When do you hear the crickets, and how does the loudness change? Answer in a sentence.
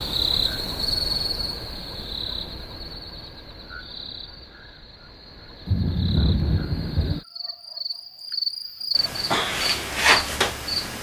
You can hear the crickets from 0.0 to 10.9 s, getting quieter then louder.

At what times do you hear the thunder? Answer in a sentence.
The thunder can be heard from 5.7 to 7.2 s.